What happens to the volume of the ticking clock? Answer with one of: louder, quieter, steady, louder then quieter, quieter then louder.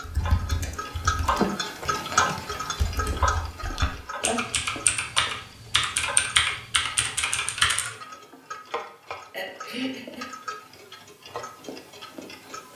quieter.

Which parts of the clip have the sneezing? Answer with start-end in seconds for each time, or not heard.
3.8-4.6, 9.3-10.2.